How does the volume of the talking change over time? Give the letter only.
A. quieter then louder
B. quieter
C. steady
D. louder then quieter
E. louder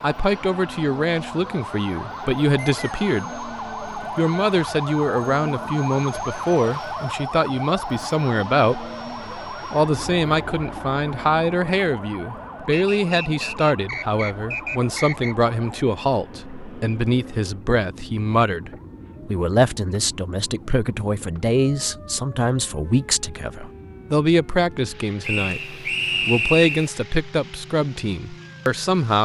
C.